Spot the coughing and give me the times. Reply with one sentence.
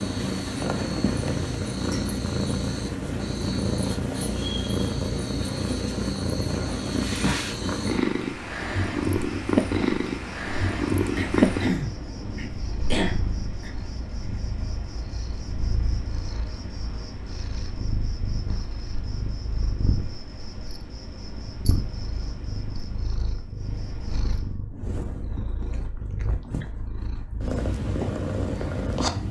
The coughing can be heard from 11.2 to 13.7 s.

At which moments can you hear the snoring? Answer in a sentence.
You can't hear the snoring here.